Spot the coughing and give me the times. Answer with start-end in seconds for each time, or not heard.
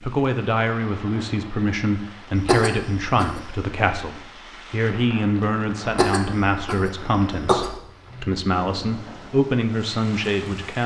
2.4-3.6, 5.8-7.8.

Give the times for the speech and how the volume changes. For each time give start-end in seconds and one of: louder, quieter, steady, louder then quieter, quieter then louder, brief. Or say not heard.
0.0-10.8 steady.